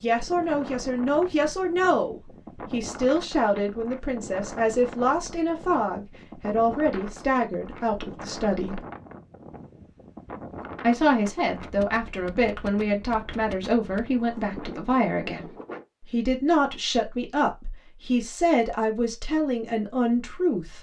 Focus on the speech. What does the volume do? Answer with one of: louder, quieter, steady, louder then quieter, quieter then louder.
steady.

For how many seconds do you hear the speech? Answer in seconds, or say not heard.
18 s.